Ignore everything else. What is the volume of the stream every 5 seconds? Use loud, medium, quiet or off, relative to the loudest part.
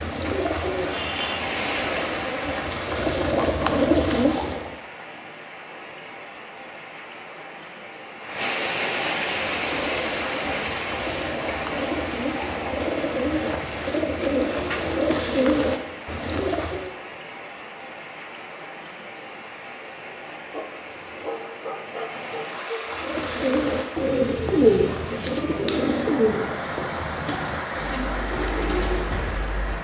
loud, loud, loud, medium, medium, loud.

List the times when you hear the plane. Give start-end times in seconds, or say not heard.
not heard.